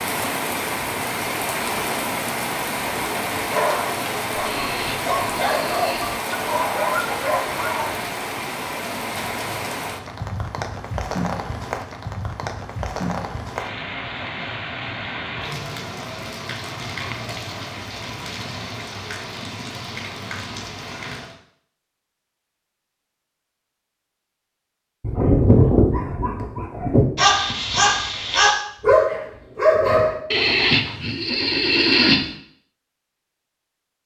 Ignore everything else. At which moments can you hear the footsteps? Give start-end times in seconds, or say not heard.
not heard.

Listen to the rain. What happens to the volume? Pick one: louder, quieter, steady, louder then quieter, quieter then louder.
quieter.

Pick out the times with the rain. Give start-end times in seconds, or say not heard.
0.0-21.4.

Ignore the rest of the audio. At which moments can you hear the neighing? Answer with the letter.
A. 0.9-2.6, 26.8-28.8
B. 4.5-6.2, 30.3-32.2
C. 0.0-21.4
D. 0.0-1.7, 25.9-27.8
B.